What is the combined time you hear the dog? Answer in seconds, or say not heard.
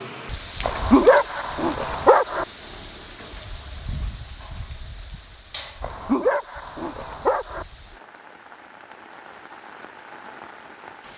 4 s.